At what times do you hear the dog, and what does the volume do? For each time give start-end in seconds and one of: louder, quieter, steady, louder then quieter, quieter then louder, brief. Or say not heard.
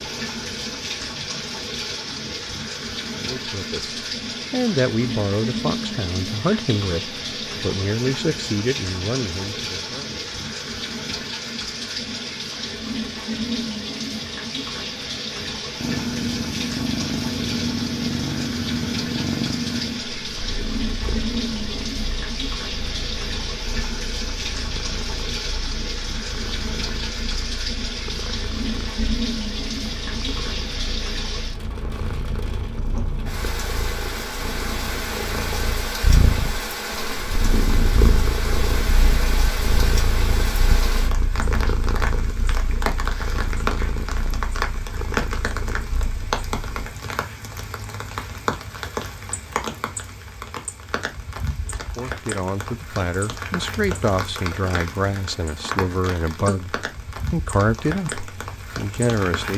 not heard.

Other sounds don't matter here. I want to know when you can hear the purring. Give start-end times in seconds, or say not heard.
15.8-46.9.